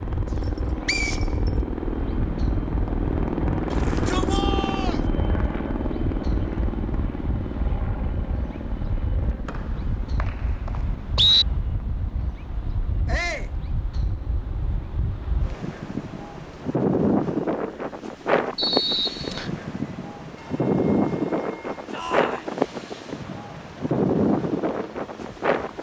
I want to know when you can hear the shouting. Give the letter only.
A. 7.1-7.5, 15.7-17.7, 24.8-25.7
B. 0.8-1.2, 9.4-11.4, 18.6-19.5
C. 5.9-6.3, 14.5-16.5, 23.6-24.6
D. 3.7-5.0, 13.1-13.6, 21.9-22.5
D.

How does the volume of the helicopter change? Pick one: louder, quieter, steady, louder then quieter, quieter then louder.
quieter.